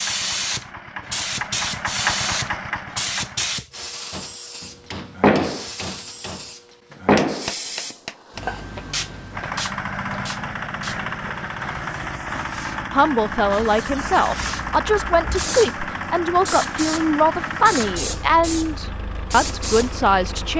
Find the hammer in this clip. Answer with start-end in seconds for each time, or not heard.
4.1-8.5.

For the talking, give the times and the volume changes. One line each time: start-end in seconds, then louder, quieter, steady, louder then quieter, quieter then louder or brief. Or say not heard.
12.9-20.5 steady.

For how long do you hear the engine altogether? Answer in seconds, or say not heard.
15 s.